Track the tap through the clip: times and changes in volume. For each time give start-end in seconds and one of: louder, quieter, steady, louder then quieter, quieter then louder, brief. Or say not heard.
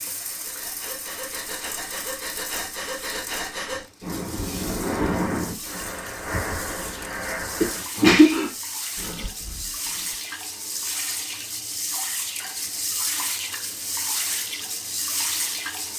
0.0-15.9 louder.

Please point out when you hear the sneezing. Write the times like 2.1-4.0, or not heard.
7.6-8.4.